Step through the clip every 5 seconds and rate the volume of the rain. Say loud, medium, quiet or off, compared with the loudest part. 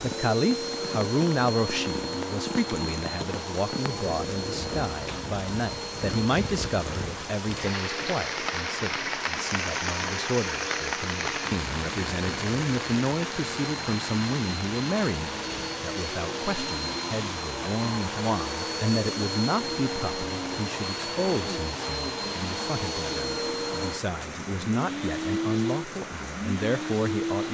medium, loud, loud, medium, medium, medium.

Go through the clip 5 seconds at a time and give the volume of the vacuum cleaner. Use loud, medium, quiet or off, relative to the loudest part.
loud, medium, medium, loud, loud, loud.